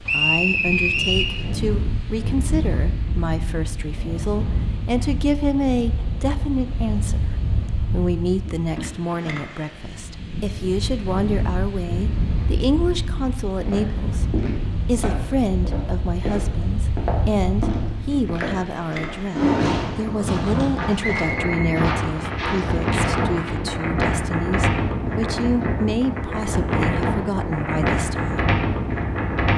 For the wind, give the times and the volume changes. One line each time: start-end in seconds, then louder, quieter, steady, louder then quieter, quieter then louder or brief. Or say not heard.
0.0-29.5 louder.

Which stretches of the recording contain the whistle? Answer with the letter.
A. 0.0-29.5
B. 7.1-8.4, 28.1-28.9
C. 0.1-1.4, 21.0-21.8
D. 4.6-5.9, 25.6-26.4
C.